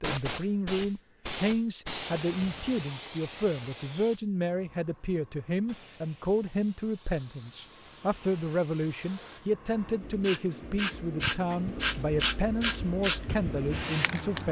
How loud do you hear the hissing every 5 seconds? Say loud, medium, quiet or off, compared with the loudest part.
loud, quiet, loud.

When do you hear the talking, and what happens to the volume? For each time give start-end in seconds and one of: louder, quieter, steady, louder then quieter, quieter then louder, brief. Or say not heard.
0.0-14.4 steady.